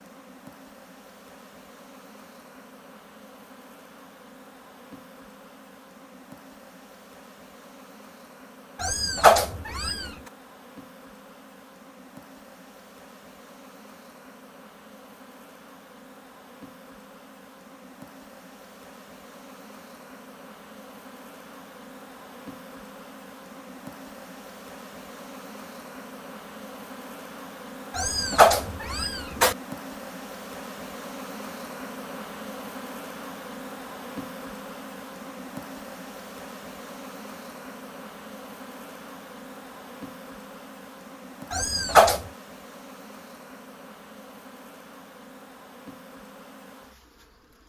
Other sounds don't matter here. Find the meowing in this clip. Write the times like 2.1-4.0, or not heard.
8.8-10.1, 27.9-29.6, 41.5-42.2.